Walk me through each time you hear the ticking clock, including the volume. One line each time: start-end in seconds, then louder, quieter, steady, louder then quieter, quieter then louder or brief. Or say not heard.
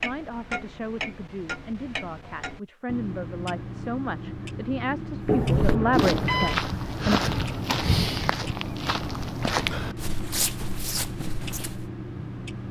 0.0-12.6 steady.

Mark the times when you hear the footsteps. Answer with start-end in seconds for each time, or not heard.
5.2-11.9.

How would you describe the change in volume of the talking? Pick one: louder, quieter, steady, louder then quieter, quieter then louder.
louder.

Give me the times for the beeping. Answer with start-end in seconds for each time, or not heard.
5.2-6.6.